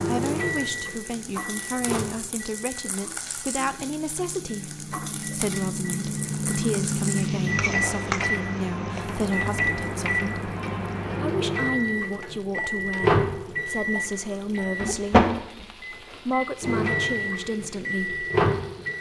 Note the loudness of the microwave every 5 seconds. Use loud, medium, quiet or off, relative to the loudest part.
medium, loud, loud, loud.